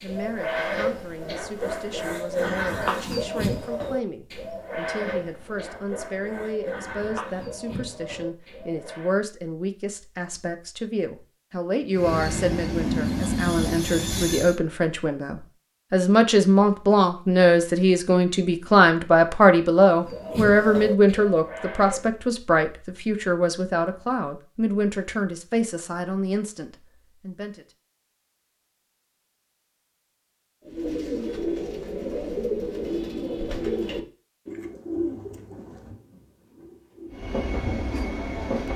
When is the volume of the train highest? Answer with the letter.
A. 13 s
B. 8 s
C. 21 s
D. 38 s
A.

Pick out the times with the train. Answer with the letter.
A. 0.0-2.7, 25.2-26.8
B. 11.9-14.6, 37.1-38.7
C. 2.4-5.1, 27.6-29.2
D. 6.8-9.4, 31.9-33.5
B.